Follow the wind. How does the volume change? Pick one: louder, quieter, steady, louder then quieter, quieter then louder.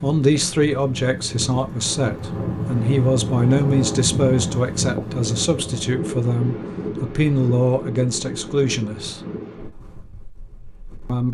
louder then quieter.